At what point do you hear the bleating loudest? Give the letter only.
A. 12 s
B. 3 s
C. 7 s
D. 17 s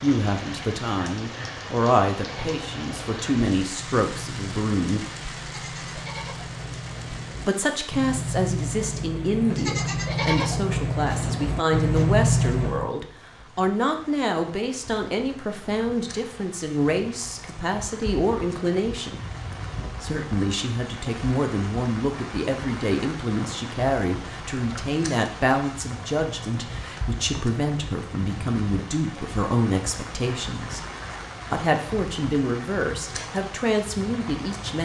A.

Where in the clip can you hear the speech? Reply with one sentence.
You can hear the speech from 0.0 to 5.0 s, from 7.5 to 19.2 s, from 20.0 to 30.8 s and from 31.5 to 34.8 s.